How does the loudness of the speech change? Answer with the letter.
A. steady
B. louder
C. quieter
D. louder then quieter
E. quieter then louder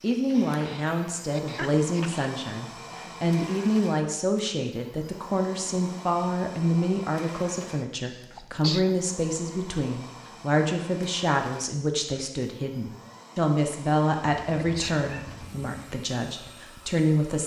A.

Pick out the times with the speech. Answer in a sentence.
You can hear the speech from 0.0 to 17.4 s.